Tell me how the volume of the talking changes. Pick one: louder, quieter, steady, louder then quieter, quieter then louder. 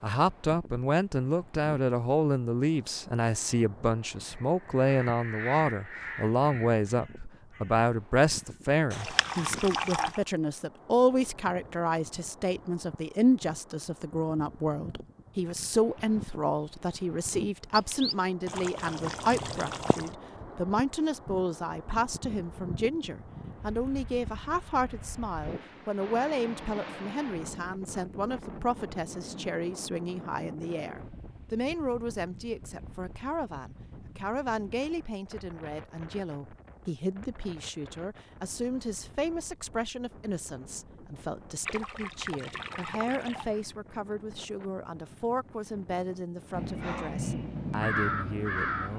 quieter.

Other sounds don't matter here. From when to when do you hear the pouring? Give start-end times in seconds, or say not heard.
8.9-10.2, 17.8-20.1, 41.6-43.5.